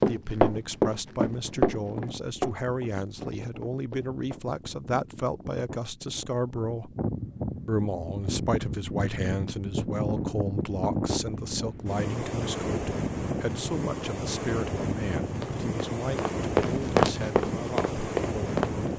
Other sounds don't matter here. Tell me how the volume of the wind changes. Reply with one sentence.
The volume of the wind goes up.